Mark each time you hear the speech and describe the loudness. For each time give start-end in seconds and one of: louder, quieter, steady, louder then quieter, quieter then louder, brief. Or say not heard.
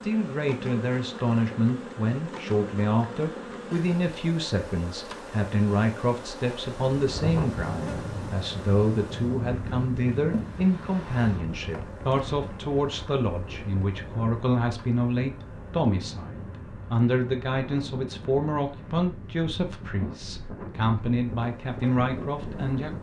0.0-22.9 steady.